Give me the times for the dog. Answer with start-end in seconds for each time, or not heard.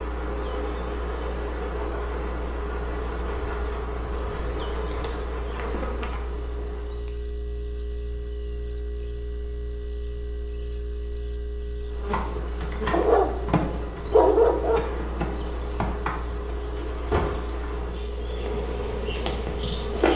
12.9-14.8.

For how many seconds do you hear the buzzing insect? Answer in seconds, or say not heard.
15 s.